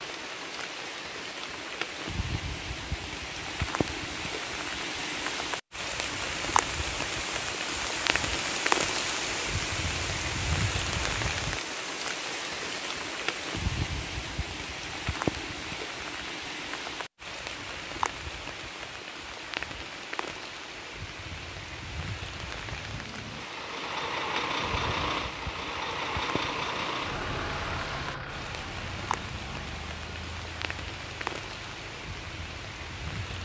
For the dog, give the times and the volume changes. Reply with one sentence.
The dog can't be heard in this clip.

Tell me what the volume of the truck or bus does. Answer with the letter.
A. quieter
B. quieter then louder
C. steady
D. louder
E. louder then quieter
A.